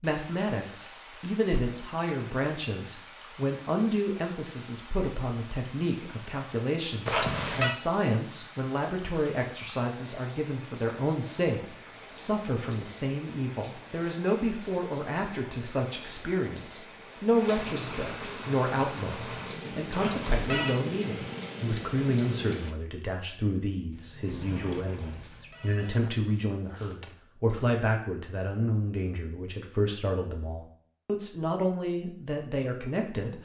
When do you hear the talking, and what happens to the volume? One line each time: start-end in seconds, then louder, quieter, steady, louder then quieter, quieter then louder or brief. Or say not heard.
0.0-33.4 steady.